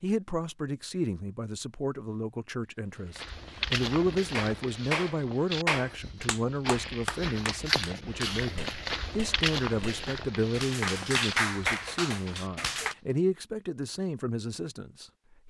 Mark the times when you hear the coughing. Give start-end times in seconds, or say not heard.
not heard.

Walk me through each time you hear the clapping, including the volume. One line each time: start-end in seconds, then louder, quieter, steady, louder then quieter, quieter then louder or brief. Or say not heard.
4.3-12.9 quieter then louder.